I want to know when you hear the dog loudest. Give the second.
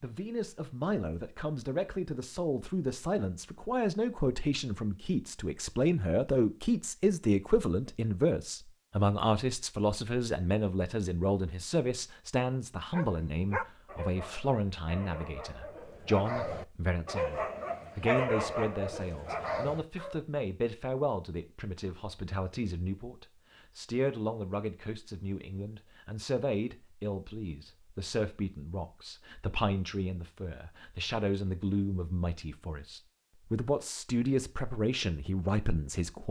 18 s.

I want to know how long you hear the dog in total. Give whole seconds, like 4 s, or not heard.
7 s.